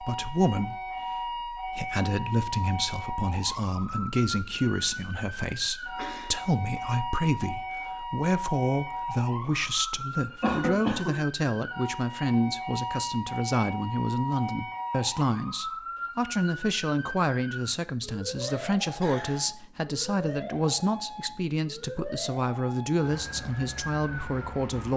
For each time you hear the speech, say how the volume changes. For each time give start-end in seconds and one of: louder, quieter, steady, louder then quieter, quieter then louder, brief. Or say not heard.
0.0-24.9 steady.